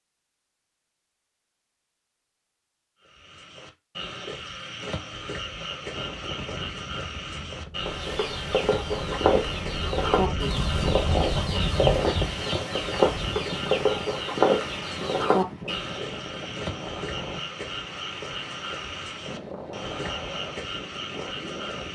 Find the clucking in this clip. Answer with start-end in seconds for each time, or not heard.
7.8-15.8.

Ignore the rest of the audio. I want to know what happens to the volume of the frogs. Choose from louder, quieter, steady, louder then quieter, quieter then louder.
steady.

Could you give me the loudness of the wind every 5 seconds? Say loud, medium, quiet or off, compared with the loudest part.
off, medium, loud, medium, medium.